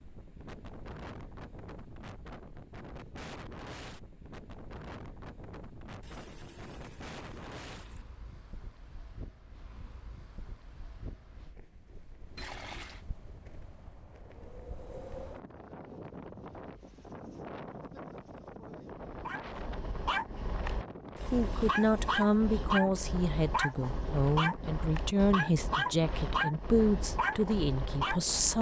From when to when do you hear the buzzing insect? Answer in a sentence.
You can't hear the buzzing insect here.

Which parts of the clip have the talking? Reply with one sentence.
You can hear the talking from 21.3 to 28.5 s.